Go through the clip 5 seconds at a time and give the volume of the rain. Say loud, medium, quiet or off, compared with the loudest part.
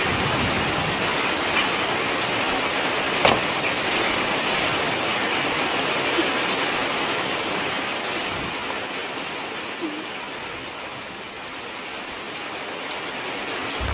loud, loud, medium.